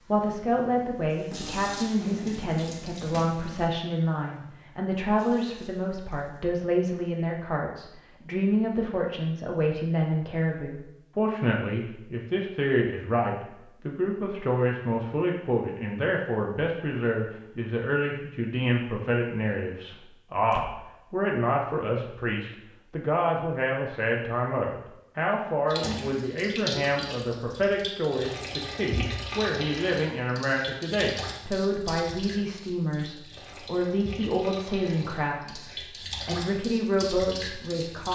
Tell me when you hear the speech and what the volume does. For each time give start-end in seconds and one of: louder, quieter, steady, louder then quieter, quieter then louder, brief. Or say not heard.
0.1-38.1 steady.